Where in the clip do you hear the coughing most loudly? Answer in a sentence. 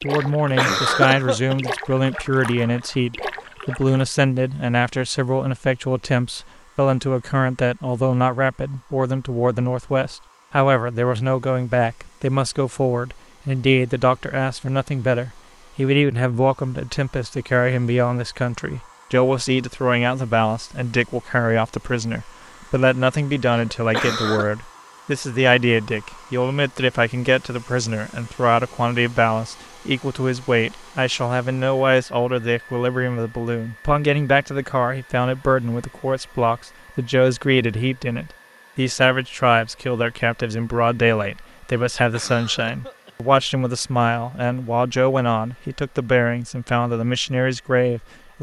The volume of the coughing peaks at 1 second.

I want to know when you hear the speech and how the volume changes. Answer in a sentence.
You can hear the speech from 0.0 to 48.3 s, at a steady volume.